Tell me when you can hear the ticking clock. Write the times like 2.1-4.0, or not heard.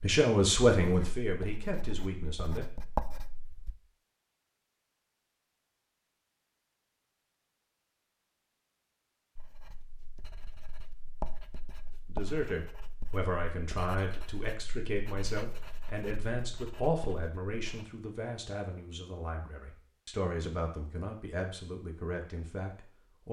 not heard.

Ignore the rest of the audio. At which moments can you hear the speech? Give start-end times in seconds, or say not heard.
0.0-2.7, 12.1-23.2.